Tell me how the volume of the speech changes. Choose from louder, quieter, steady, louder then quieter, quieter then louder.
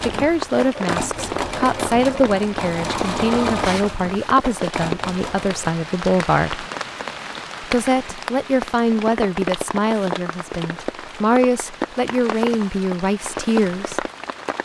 steady.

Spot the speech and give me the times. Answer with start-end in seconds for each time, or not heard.
0.0-6.7, 7.6-14.1.